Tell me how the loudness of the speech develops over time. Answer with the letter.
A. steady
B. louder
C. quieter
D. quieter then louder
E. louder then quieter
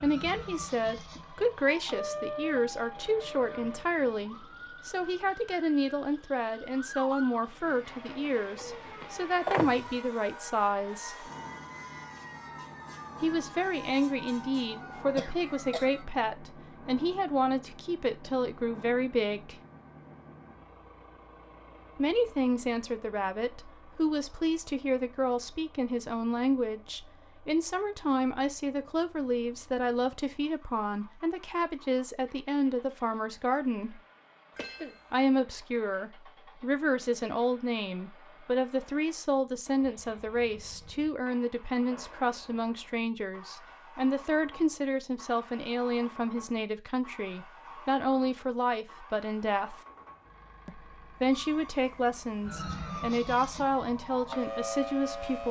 A.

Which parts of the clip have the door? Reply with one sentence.
You can hear the door from 8.6 to 9.9 s.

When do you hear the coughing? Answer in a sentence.
The coughing can be heard from 15.2 to 15.8 s and from 34.5 to 35.2 s.